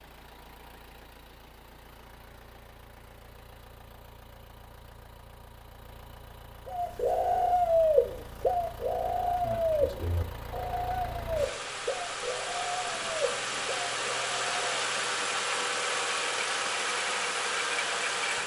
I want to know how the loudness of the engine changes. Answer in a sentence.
The loudness of the engine goes up.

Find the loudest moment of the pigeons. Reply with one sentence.
The volume of the pigeons peaks at 8 seconds.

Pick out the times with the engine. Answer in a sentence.
The engine can be heard from 0.0 to 18.4 s.